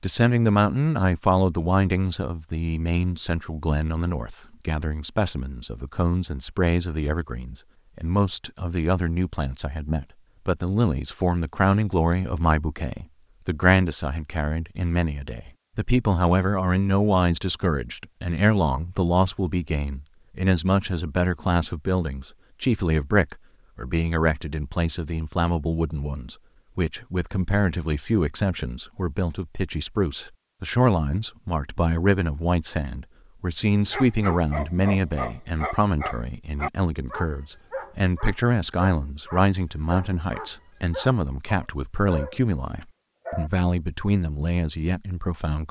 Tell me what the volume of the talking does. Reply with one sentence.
The loudness of the talking stays about the same.